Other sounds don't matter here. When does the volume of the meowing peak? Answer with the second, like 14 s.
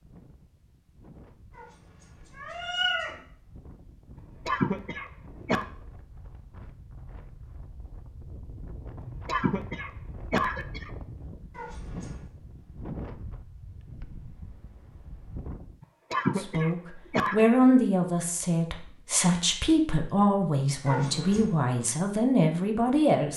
3 s.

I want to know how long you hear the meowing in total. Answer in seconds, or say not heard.
3 s.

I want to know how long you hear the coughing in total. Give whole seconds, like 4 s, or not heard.
5 s.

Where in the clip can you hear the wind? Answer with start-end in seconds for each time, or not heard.
0.0-15.8.